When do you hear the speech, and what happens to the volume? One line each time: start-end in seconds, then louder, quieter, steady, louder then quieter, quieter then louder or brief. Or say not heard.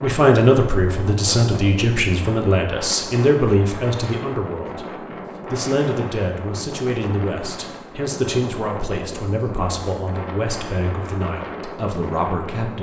0.0-12.7 quieter.